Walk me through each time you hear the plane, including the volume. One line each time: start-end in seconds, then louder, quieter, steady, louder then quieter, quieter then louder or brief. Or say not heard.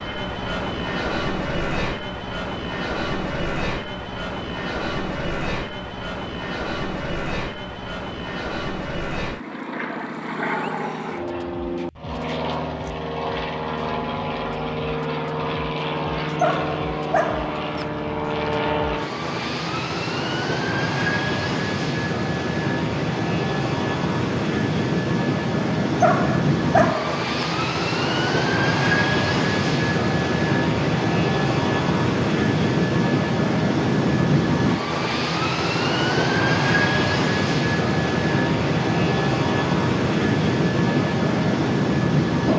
0.0-42.5 louder.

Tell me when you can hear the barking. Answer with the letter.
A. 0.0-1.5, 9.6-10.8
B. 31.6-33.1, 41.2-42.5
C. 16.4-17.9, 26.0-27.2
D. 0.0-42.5
C.